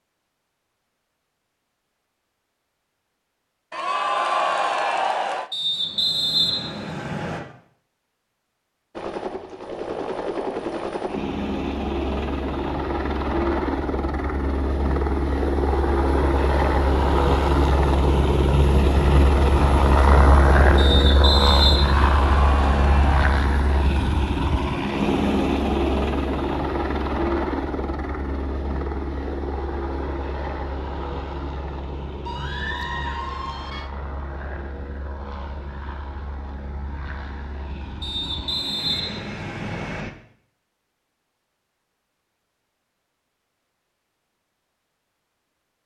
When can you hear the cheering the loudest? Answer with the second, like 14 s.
4 s.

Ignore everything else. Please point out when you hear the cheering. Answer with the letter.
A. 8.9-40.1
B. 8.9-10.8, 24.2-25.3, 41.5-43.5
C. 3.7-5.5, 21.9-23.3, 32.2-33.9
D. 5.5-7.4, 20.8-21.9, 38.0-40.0
C.